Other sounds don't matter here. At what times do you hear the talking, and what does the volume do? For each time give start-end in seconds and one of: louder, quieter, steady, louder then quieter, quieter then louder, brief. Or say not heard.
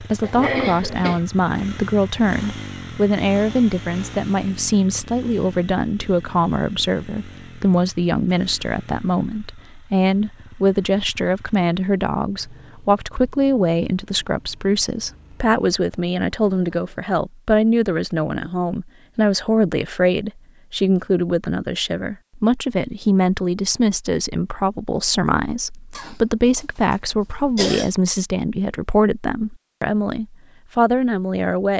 0.0-31.7 steady.